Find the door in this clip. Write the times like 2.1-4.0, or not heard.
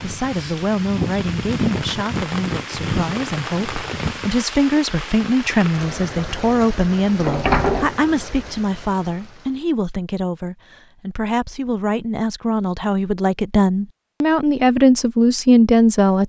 7.2-8.0.